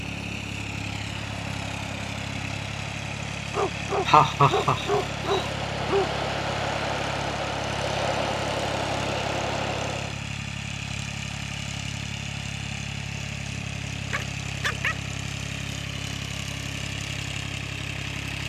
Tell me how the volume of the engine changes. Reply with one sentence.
The loudness of the engine stays about the same.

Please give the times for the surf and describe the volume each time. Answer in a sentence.
You can hear the surf from 0.0 to 10.2 s, getting louder.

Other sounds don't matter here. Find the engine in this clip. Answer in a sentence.
The engine can be heard from 0.0 to 18.4 s.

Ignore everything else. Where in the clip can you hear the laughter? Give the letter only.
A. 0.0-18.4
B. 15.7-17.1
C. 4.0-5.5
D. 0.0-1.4
C.